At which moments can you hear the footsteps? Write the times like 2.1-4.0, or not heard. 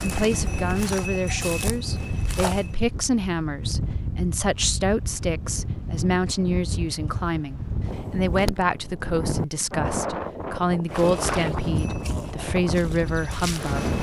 0.0-2.8, 10.9-13.9.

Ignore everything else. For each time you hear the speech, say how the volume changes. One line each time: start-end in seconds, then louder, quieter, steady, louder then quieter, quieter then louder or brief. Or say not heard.
0.0-13.8 steady.